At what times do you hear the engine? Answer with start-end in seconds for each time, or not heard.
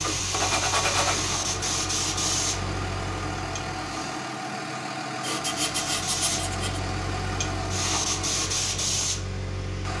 0.0-9.9.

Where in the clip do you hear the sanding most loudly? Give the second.
1 s.